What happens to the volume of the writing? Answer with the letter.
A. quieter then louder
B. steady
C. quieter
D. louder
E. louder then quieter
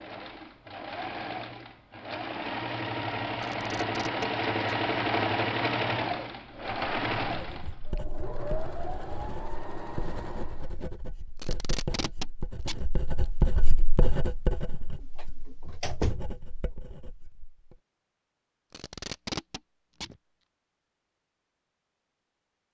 E.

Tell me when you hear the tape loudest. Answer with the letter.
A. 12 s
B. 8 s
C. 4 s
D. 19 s
D.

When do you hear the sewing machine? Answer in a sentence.
The sewing machine can be heard from 0.0 to 10.8 s.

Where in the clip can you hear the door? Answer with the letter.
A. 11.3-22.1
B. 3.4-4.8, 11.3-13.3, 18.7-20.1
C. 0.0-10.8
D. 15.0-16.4
D.